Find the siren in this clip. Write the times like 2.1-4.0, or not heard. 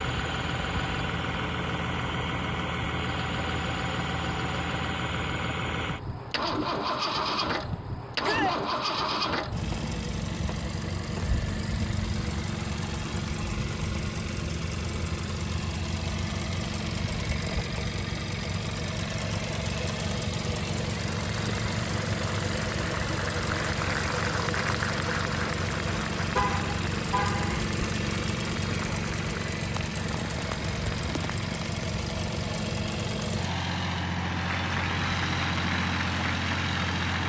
not heard.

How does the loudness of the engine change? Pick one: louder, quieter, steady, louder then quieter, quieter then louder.
steady.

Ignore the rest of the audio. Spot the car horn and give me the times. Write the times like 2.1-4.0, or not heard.
26.3-27.6.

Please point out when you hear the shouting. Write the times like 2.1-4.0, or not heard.
8.2-8.6.